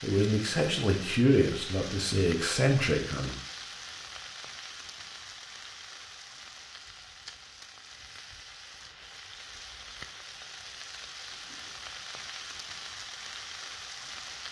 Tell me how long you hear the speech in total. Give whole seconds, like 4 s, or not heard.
3 s.